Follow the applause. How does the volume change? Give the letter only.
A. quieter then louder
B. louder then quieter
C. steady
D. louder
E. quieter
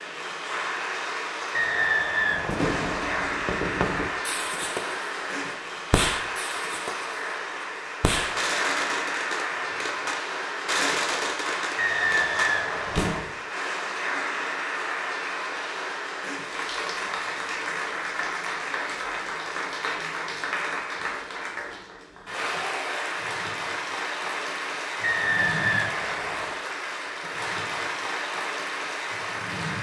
C.